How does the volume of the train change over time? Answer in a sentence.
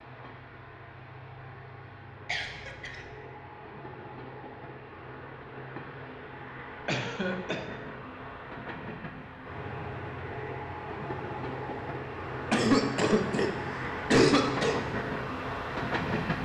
The volume of the train goes up.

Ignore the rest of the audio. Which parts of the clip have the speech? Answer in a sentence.
The speech can't be heard in this clip.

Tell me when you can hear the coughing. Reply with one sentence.
You can hear the coughing from 2.2 to 3.0 s, from 6.8 to 7.6 s and from 12.5 to 14.8 s.